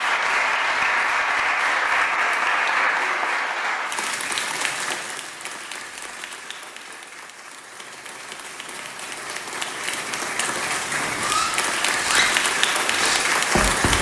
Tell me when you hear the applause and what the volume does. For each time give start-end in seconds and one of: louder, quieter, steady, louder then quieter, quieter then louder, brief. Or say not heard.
0.0-13.9 quieter then louder.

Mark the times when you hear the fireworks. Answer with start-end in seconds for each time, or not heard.
11.2-13.9.